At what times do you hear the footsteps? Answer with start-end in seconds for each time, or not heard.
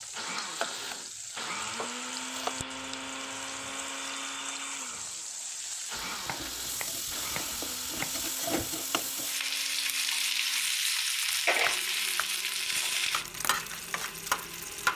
not heard.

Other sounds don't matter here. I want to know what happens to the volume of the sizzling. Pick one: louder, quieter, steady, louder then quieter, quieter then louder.
louder.